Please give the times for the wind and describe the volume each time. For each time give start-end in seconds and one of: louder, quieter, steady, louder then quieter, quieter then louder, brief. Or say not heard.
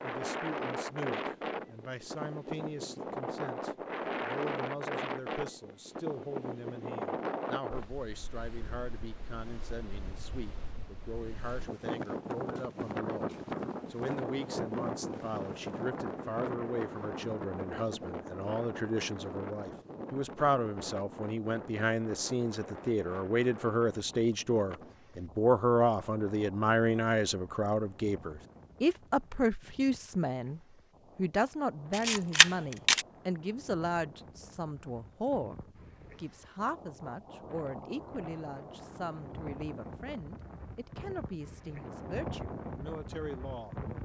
0.0-44.0 quieter then louder.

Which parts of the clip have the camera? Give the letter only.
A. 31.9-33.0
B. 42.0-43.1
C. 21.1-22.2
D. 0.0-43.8
A.